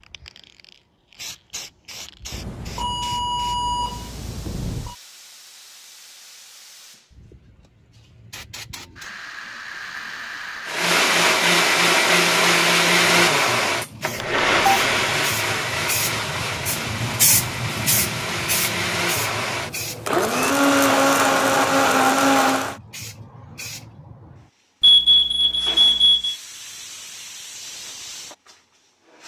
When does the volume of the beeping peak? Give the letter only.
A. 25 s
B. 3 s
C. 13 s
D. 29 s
A.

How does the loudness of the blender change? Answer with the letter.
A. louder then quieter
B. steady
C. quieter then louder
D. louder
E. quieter
C.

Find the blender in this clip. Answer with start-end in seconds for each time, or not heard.
10.7-22.8.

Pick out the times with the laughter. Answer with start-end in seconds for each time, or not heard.
not heard.